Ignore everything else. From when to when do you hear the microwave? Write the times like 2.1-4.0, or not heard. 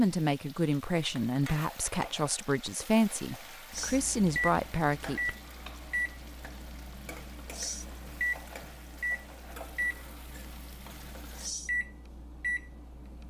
3.7-13.2.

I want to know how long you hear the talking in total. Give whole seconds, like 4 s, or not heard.
5 s.